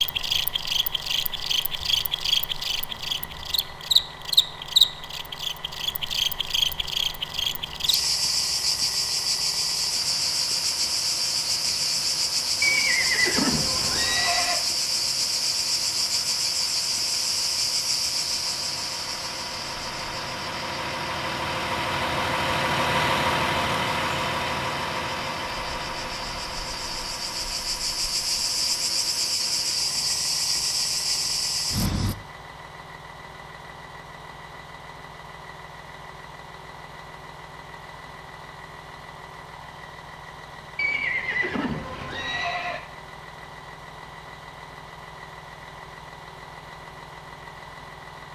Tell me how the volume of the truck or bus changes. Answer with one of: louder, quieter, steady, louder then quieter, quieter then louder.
louder then quieter.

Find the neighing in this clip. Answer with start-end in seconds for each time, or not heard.
12.6-14.6, 40.8-42.8.